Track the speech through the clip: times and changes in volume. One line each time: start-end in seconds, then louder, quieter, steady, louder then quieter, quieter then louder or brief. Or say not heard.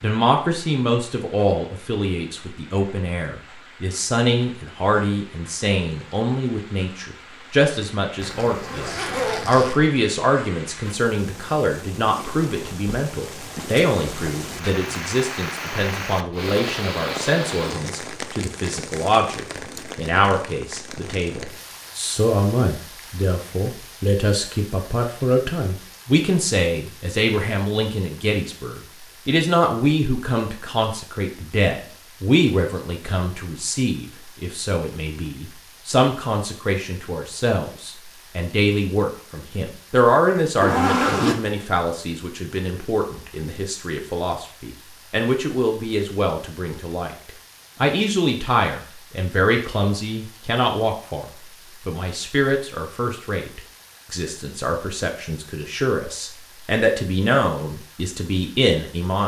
0.0-59.2 steady.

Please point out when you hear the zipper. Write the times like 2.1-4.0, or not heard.
8.2-9.8, 40.6-41.5.